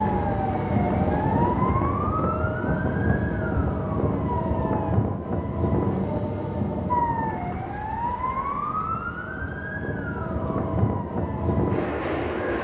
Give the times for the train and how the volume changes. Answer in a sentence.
You can hear the train from 0.0 to 12.5 s, getting quieter then louder.